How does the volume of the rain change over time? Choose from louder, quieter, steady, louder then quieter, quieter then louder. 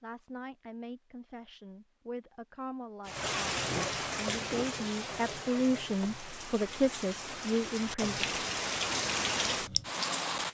quieter then louder.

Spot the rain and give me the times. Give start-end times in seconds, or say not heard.
3.0-10.4.